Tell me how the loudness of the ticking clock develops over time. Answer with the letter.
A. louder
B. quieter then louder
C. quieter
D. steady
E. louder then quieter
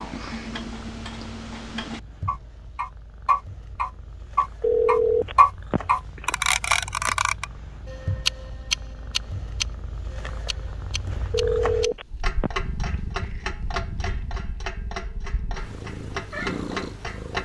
E.